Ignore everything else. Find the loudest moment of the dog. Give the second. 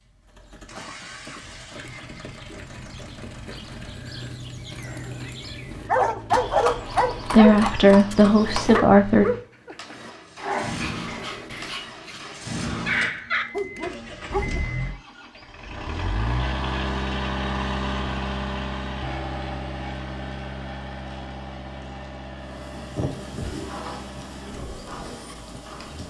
6 s.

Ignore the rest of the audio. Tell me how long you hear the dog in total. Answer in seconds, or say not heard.
9 s.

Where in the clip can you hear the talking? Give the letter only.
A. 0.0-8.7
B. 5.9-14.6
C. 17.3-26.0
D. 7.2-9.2
D.